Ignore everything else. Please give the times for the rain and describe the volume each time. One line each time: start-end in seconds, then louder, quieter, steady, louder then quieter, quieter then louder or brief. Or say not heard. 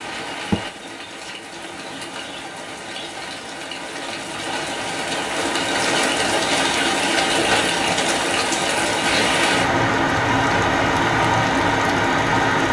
0.0-12.6 louder.